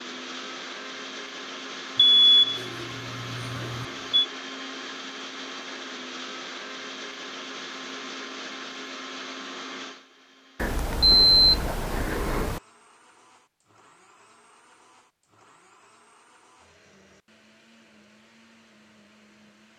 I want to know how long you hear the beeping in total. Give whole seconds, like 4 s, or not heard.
4 s.